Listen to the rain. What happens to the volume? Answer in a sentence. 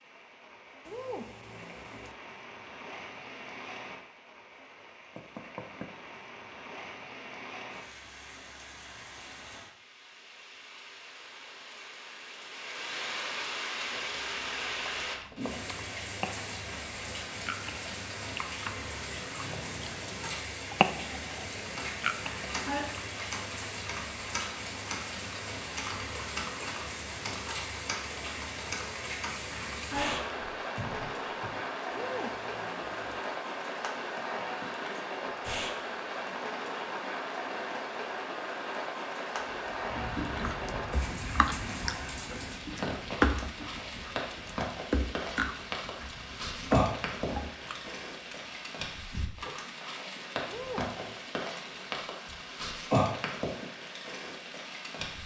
The loudness of the rain goes up.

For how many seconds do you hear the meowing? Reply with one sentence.
You can hear the meowing for 3 seconds altogether.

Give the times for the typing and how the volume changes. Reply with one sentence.
You can hear the typing from 21.6 to 31.6 s, at a steady volume.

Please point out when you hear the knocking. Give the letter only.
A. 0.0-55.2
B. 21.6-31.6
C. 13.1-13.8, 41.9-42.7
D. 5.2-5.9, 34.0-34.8
D.